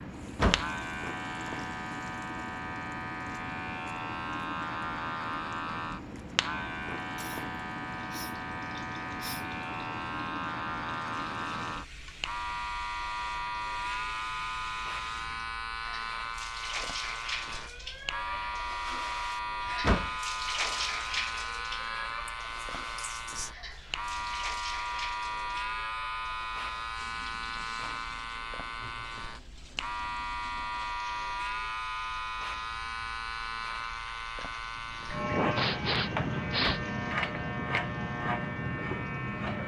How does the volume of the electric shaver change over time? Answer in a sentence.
The volume of the electric shaver stays about the same.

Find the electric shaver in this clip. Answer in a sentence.
The electric shaver can be heard from 0.0 to 39.6 s.